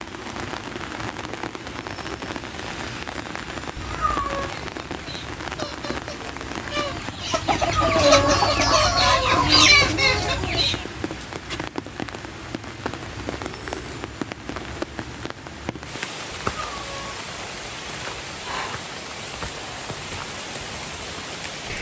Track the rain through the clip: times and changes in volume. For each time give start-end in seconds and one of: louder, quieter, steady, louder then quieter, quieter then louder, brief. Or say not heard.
0.0-21.7 steady.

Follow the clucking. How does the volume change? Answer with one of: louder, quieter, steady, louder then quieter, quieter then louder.
louder.